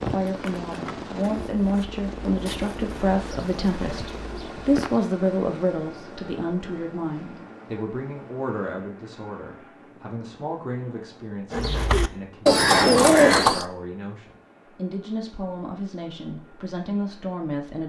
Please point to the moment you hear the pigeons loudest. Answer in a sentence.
The volume of the pigeons peaks at 13 seconds.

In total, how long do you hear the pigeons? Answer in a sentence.
The pigeons can be heard for 7 seconds in total.